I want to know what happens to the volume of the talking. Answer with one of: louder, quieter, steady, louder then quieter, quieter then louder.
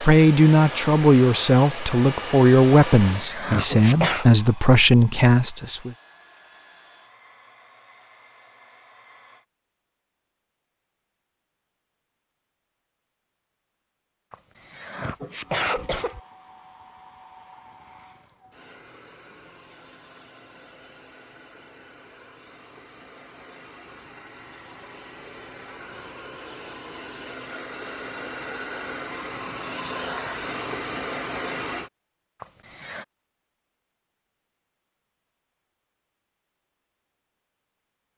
steady.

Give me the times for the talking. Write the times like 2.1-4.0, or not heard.
0.0-6.0.